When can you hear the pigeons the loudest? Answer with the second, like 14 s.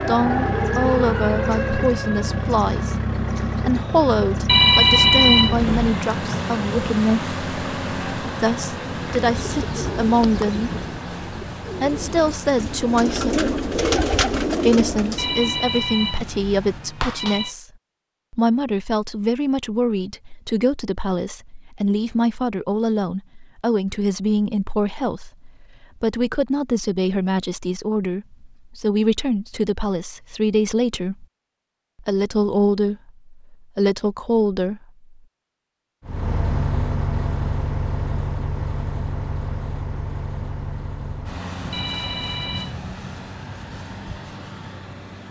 14 s.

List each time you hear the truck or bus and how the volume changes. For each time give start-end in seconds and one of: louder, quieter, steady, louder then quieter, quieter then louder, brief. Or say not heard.
0.0-17.0 quieter
36.0-45.2 quieter.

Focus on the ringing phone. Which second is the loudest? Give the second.
5 s.